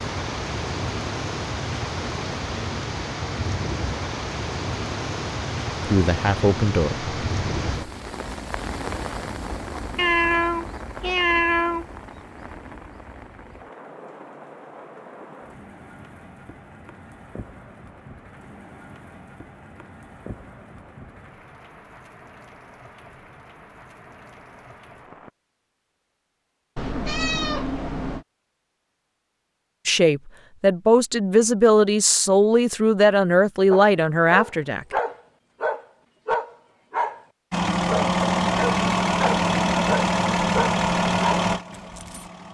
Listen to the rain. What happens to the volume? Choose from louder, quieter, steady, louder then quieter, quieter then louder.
quieter.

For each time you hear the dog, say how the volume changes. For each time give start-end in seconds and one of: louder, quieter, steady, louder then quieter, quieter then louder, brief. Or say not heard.
33.7-42.3 steady.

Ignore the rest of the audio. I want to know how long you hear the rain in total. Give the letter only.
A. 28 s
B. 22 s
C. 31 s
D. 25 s
D.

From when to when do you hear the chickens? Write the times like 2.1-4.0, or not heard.
not heard.